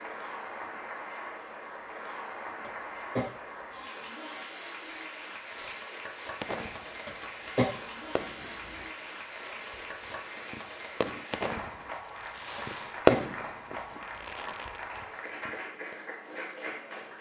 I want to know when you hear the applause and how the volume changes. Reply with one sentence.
The applause can be heard from 0.0 to 17.1 s, at a steady volume.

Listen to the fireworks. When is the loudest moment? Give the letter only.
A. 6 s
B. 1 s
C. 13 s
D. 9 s
C.